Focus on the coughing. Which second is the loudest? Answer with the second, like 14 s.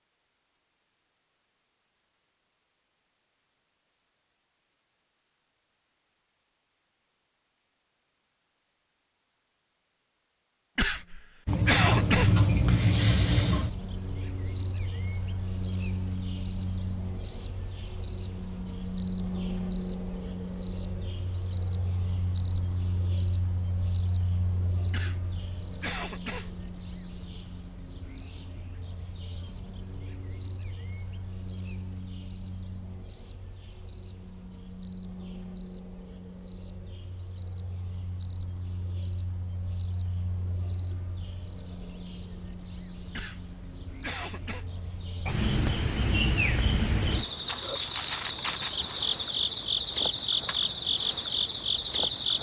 12 s.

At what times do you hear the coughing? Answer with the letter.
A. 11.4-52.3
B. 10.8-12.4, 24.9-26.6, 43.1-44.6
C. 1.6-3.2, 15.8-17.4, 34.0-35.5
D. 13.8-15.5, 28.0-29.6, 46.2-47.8
B.